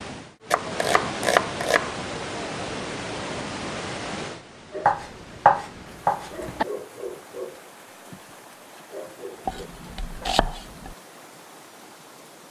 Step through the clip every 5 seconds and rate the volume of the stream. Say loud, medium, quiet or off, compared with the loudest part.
loud, quiet, quiet.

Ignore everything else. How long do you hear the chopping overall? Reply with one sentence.
You can hear the chopping for 5 seconds altogether.